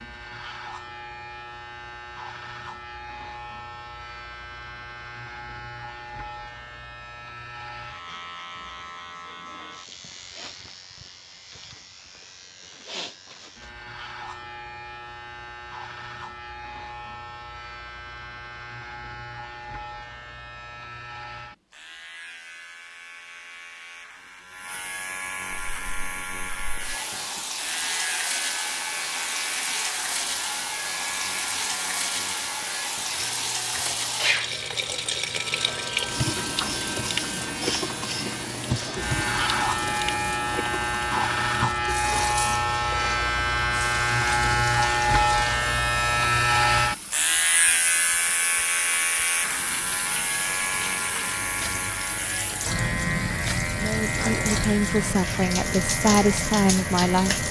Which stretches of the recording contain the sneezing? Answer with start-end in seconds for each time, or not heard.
not heard.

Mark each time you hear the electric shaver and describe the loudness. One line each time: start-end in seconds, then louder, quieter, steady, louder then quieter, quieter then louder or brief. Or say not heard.
0.0-57.4 louder.